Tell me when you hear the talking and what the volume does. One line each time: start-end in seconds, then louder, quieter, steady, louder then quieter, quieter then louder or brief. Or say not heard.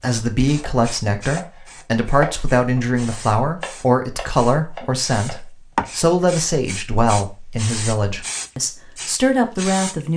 0.0-10.1 steady.